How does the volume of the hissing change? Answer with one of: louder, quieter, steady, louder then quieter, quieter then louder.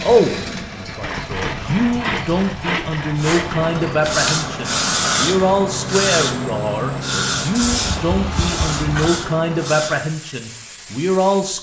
quieter.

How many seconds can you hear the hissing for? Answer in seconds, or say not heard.
8 s.